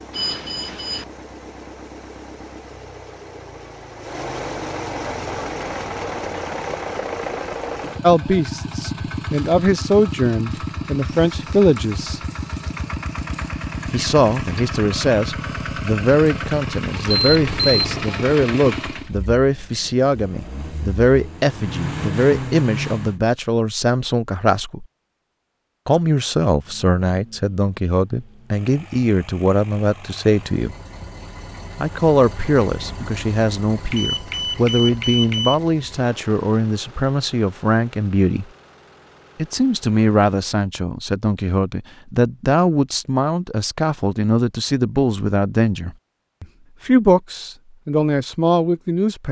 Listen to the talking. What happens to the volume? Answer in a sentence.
The loudness of the talking stays about the same.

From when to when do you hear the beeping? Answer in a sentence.
The beeping can be heard from 0.1 to 1.1 s, from 17.2 to 18.1 s and from 33.9 to 35.5 s.